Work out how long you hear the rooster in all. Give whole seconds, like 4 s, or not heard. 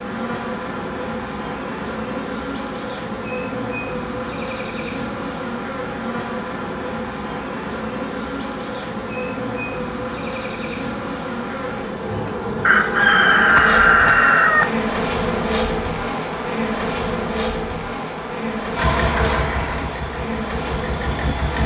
2 s.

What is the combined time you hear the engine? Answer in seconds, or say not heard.
3 s.